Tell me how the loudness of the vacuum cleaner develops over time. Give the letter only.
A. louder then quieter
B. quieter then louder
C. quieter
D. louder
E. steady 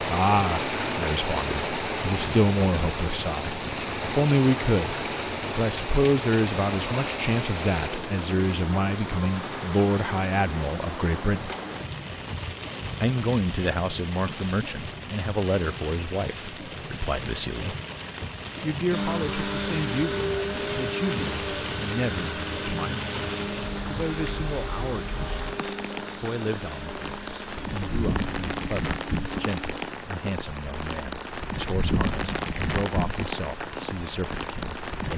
C.